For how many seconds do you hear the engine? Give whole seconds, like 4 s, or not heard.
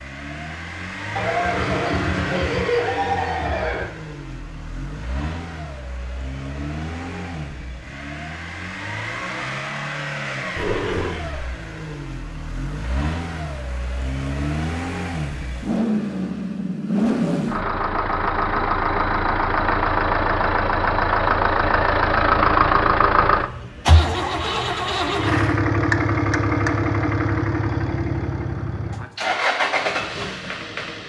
31 s.